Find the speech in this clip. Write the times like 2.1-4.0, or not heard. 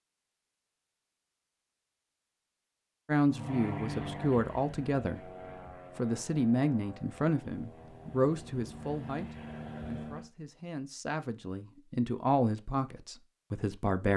3.0-5.3, 6.0-14.1.